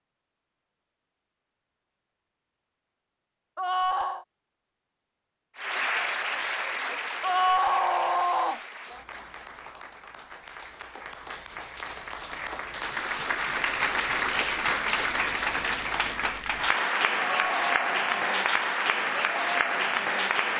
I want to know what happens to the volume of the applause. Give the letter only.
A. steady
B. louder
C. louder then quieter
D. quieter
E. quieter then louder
E.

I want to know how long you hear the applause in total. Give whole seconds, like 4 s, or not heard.
15 s.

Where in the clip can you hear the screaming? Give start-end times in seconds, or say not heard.
3.5-4.2, 7.2-8.6, 17.2-18.5.